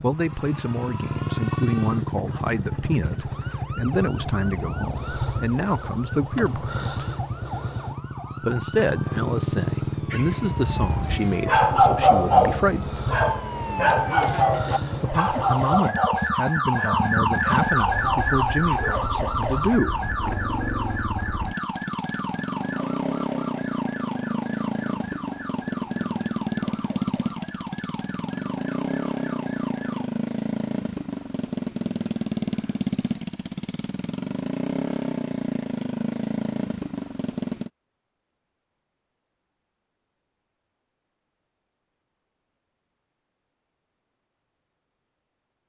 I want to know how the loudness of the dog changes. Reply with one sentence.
The loudness of the dog goes down.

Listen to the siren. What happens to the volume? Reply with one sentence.
The loudness of the siren goes up, then down.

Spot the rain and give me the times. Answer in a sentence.
The rain can't be heard in this clip.